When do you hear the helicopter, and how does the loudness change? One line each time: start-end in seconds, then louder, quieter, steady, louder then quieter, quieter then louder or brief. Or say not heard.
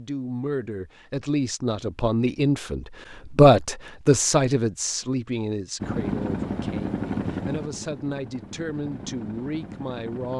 5.8-10.3 quieter.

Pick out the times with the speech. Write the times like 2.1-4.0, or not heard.
0.0-10.3.